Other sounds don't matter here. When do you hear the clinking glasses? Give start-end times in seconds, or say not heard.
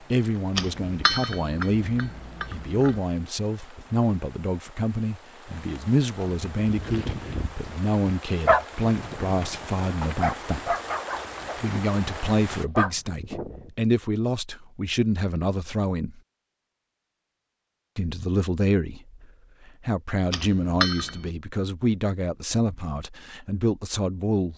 0.6-3.0, 20.3-21.3.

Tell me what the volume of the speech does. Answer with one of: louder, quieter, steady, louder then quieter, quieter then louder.
steady.